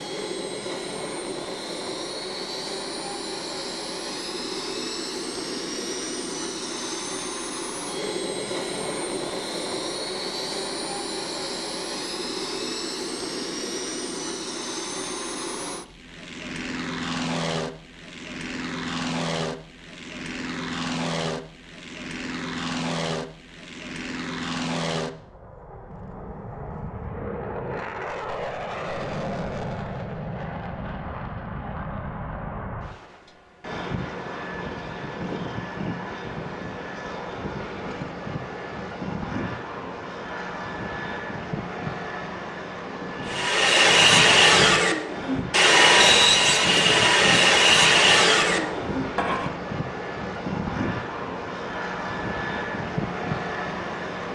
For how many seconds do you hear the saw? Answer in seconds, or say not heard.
6 s.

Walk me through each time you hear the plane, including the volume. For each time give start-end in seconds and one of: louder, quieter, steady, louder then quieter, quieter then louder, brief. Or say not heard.
0.0-54.3 steady.